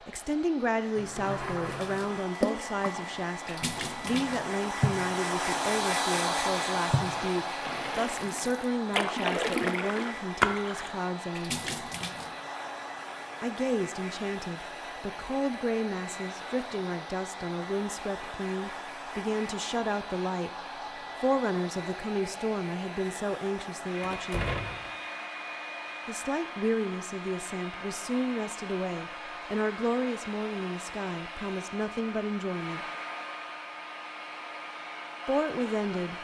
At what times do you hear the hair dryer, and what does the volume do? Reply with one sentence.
The hair dryer can be heard from 0.0 to 36.1 s, getting quieter.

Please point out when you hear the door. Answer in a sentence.
You can hear the door from 0.9 to 2.3 s and from 24.0 to 24.9 s.